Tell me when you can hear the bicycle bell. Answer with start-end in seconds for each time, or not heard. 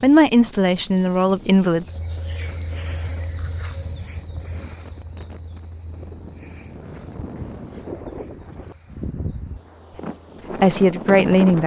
not heard.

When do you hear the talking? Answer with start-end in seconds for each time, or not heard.
0.0-1.9, 10.6-11.6.